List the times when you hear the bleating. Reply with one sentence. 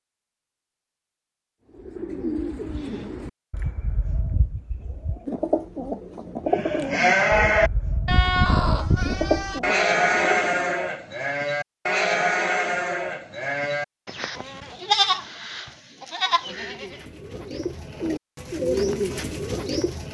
The bleating can be heard from 6.5 to 17.0 s.